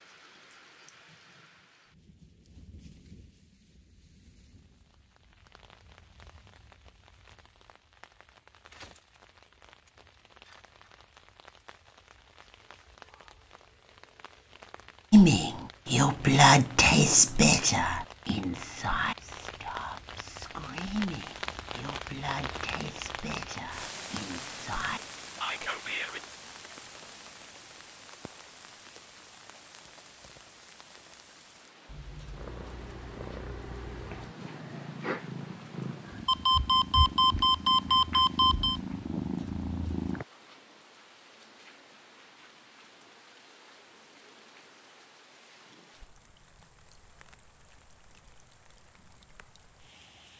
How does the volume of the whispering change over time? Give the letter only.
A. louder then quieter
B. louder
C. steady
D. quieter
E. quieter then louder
D.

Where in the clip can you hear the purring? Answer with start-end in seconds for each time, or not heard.
31.9-40.2.